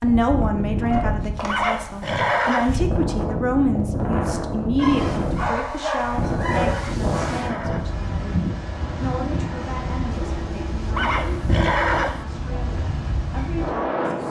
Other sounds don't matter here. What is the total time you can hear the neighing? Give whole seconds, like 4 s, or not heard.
4 s.